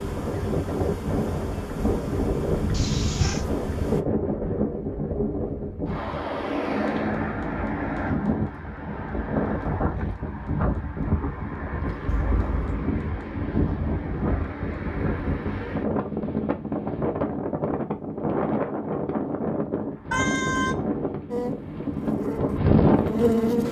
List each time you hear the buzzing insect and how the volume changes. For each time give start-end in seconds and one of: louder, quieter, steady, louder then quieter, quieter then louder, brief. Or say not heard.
0.0-4.0 louder
21.3-23.6 brief.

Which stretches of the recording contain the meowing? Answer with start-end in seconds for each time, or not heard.
2.7-3.5, 12.1-12.6, 20.1-20.8.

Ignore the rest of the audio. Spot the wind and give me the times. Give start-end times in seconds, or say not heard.
0.0-23.6.